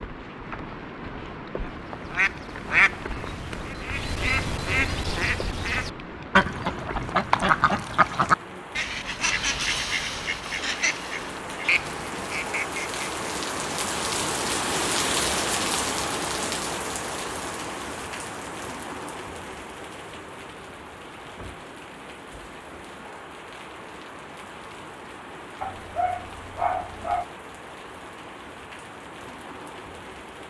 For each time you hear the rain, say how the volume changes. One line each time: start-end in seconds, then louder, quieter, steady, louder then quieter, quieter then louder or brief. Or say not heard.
0.0-30.4 louder then quieter.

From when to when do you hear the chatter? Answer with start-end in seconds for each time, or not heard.
not heard.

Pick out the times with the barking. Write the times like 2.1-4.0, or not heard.
25.6-27.2.